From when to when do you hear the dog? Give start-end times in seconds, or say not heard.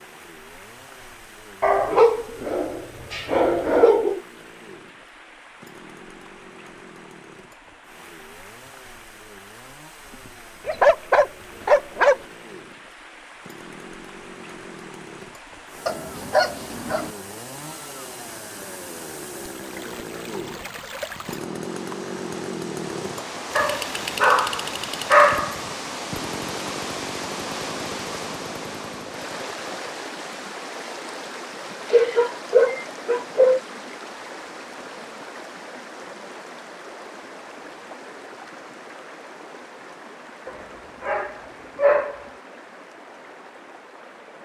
1.6-4.2, 10.7-12.2, 15.8-17.1, 23.6-25.6, 31.9-33.6, 40.5-42.2.